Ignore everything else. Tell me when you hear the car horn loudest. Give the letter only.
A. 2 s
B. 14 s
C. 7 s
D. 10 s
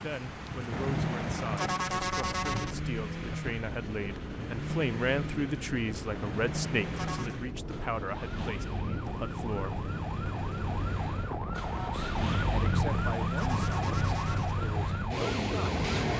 A.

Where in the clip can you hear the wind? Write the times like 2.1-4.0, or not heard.
0.0-16.1.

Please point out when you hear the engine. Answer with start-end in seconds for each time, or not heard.
0.0-16.1.